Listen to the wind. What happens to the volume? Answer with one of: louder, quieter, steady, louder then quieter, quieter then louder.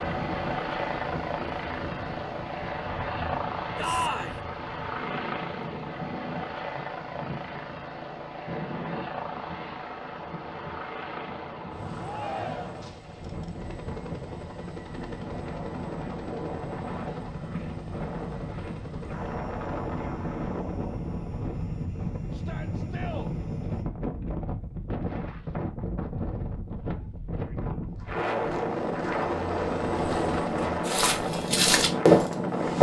louder.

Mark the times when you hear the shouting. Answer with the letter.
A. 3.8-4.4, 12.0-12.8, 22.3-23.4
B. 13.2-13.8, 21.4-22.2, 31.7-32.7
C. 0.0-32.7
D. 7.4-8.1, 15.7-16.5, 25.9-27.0
A.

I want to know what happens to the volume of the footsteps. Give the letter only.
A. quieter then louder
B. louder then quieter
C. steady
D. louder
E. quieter
D.